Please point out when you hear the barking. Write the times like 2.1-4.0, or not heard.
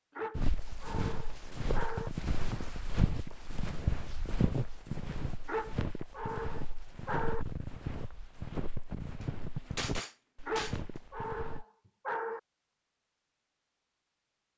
0.1-2.1, 5.5-7.5, 10.4-12.4.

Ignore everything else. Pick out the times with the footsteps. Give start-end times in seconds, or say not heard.
0.3-11.7.